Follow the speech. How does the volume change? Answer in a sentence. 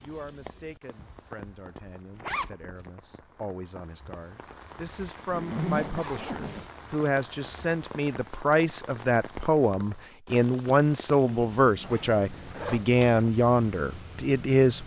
The loudness of the speech goes up.